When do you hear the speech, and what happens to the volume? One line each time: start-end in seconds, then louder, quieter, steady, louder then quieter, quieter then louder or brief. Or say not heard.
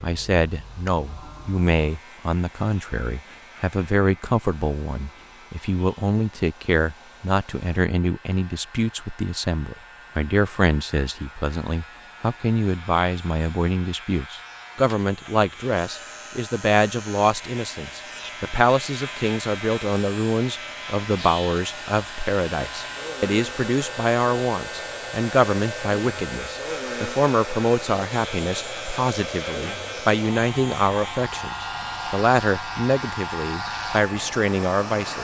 0.0-35.1 steady.